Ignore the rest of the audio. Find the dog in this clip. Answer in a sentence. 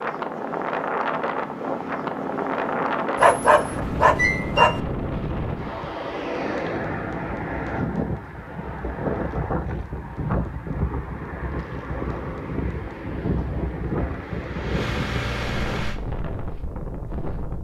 The dog can be heard from 3.1 to 4.8 s.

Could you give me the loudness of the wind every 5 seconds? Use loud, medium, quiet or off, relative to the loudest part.
loud, loud, loud, medium.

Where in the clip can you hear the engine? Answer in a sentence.
You can hear the engine from 0.0 to 5.4 s and from 14.2 to 16.0 s.